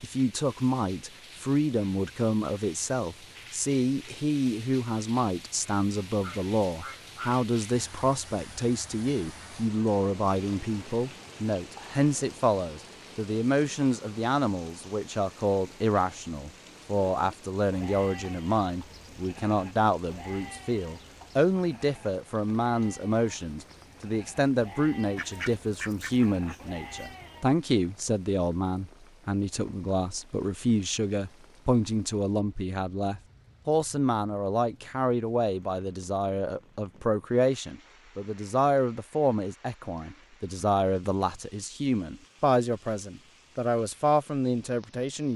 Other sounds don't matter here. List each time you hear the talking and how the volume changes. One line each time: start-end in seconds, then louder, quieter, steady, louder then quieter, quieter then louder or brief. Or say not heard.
0.0-45.3 steady.